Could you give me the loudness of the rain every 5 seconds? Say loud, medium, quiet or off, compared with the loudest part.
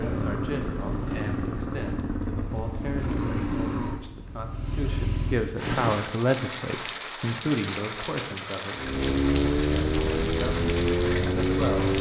off, loud, loud.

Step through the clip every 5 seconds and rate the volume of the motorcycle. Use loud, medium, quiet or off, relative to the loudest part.
medium, loud, loud.